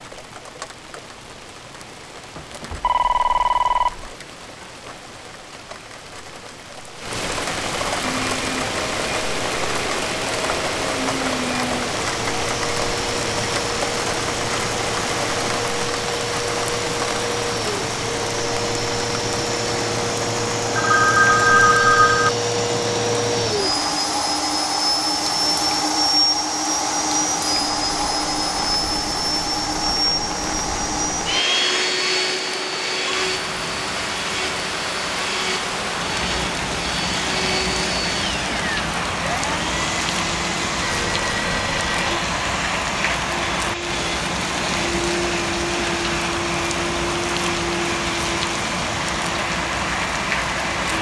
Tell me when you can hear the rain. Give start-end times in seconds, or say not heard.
0.0-50.9.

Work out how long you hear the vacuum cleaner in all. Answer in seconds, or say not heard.
43 s.